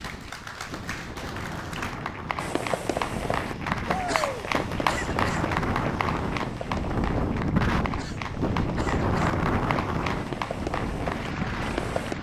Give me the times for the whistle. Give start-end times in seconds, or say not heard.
not heard.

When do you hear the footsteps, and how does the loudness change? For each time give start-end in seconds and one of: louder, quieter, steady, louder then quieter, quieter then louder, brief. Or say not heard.
not heard.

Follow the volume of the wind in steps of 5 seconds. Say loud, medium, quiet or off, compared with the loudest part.
medium, loud, medium.